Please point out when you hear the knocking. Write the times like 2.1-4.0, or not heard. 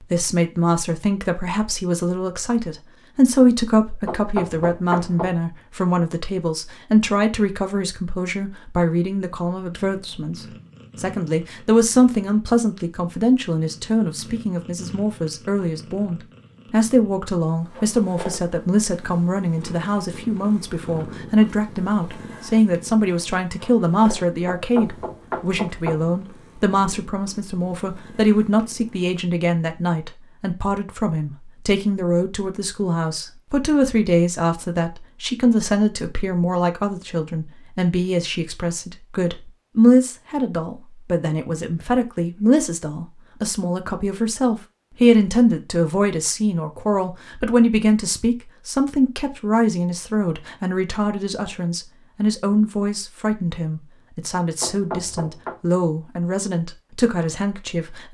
4.0-5.3, 24.4-26.1, 54.6-55.5.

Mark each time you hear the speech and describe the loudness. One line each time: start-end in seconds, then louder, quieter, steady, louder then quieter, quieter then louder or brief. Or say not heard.
0.0-58.0 steady.